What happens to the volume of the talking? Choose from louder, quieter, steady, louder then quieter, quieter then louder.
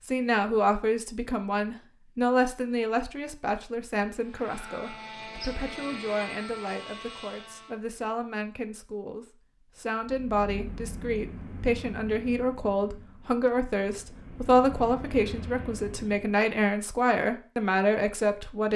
quieter then louder.